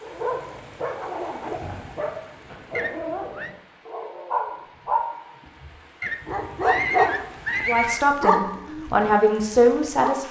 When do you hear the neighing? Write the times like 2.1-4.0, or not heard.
2.8-3.5, 6.0-8.1.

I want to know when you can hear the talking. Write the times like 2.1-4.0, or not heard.
7.7-10.2.